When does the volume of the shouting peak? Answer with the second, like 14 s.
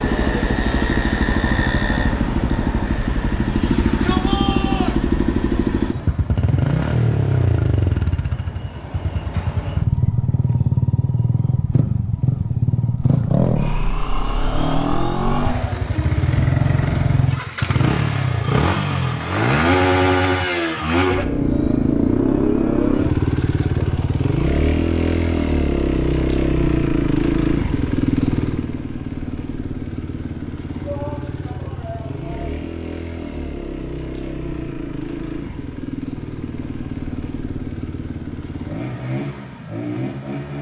4 s.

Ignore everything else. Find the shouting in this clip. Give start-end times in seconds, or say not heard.
3.6-5.0, 15.2-15.8, 30.8-32.5.